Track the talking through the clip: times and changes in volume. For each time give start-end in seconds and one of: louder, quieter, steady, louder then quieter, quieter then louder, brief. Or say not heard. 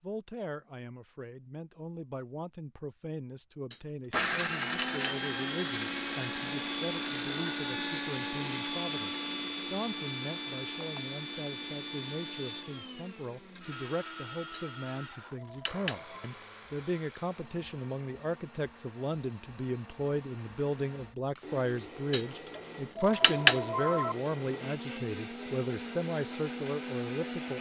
0.0-27.5 louder.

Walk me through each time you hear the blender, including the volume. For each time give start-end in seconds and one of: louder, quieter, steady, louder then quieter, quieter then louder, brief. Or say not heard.
4.1-27.5 quieter then louder.